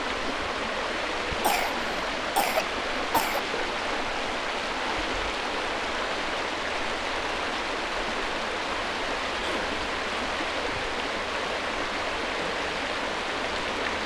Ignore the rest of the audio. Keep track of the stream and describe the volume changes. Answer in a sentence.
The volume of the stream stays about the same.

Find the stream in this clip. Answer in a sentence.
You can hear the stream from 0.0 to 14.0 s.